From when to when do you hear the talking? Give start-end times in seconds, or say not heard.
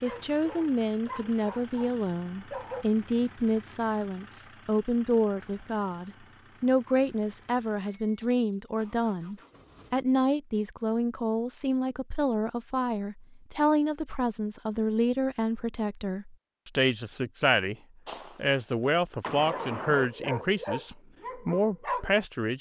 0.0-17.8, 18.4-22.5.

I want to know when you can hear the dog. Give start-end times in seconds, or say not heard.
0.0-2.9, 19.4-22.2.